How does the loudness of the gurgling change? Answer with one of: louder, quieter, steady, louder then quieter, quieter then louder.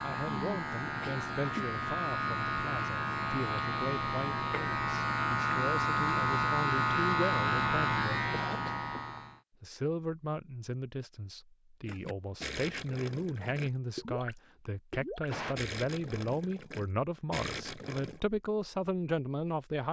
steady.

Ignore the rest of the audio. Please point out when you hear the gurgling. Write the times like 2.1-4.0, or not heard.
11.8-18.2.